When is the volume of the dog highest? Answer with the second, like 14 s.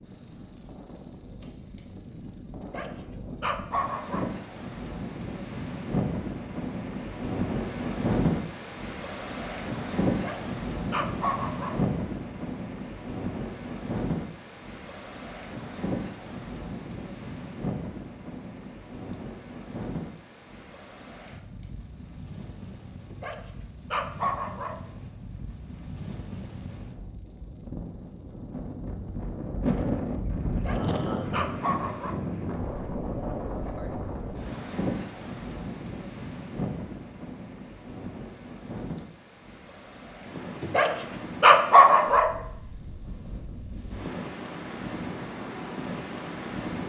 42 s.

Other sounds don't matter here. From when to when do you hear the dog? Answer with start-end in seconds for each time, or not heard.
2.6-4.3, 10.1-11.8, 23.1-24.8, 30.5-32.2, 40.6-42.3.